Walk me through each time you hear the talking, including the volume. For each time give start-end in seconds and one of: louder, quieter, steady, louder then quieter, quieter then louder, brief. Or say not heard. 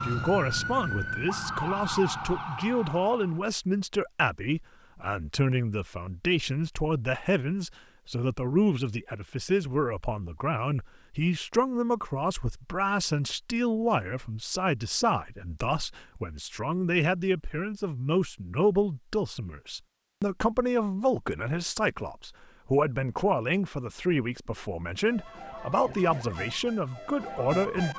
0.0-27.9 steady.